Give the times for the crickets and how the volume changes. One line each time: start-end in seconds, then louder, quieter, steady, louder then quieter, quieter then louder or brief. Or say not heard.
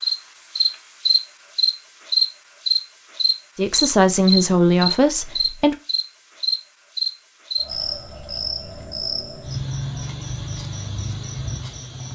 0.0-12.0 quieter.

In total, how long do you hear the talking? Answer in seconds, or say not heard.
2 s.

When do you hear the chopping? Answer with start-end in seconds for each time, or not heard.
not heard.